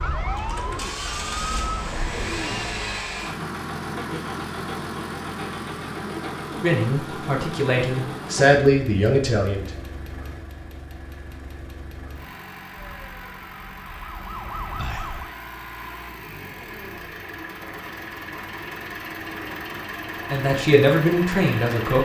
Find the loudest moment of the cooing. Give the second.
2 s.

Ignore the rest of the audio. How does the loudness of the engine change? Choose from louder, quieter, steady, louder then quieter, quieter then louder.
quieter then louder.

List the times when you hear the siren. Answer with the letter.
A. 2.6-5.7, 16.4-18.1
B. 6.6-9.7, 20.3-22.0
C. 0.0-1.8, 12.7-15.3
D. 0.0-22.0
C.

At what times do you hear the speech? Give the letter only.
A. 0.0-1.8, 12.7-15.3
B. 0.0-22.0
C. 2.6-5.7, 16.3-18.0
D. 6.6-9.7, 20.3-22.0
D.